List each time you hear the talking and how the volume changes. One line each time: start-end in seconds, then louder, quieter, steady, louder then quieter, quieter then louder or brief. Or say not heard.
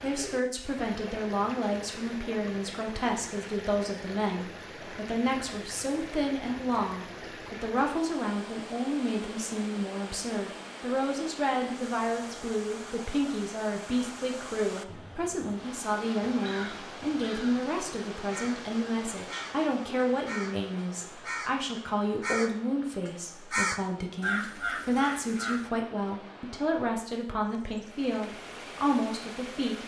0.0-29.8 steady.